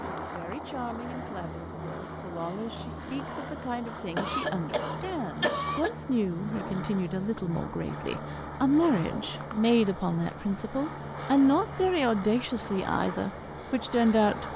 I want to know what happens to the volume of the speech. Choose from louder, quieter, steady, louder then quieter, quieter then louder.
louder.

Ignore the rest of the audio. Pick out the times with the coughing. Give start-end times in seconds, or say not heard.
4.2-5.9.